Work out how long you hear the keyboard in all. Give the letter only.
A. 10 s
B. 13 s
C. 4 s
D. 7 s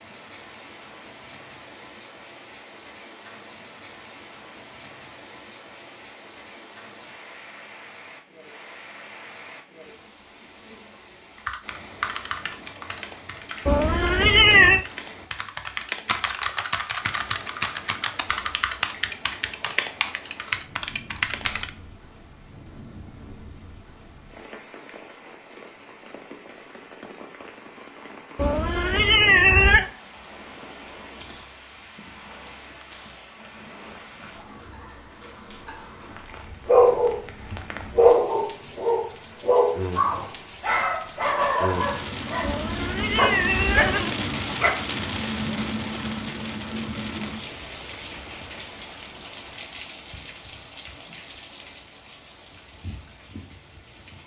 A.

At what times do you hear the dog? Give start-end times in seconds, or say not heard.
36.6-44.8.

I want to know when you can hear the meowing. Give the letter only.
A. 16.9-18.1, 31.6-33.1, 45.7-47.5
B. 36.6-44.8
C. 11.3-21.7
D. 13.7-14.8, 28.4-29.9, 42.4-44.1
D.